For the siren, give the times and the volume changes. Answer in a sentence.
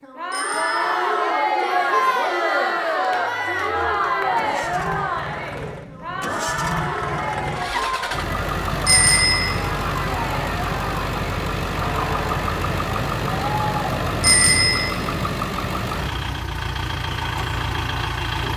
You can't hear the siren here.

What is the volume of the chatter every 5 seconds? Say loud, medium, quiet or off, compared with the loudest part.
loud, medium, medium, off.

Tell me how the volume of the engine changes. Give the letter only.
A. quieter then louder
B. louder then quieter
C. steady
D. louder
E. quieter
D.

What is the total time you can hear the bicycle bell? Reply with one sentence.
The bicycle bell can be heard for 2 seconds in total.